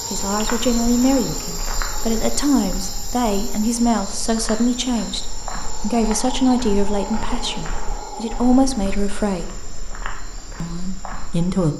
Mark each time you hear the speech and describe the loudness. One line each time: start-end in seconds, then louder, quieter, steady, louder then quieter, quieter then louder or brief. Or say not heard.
0.0-9.6 steady
10.6-11.7 brief.